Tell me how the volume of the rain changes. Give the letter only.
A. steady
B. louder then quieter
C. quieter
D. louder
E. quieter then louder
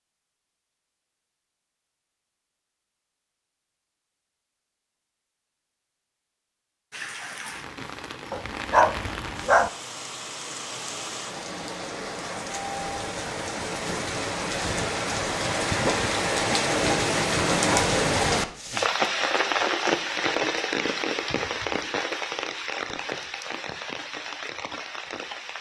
B.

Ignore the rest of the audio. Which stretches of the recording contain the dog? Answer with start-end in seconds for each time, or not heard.
8.3-9.7.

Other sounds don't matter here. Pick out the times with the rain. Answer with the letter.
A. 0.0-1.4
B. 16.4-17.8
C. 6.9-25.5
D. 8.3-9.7
C.